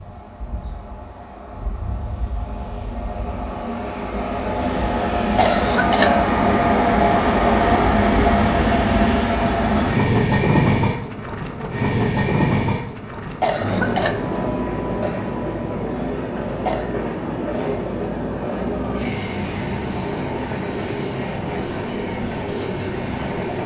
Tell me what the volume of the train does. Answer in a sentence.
The volume of the train goes up, then down.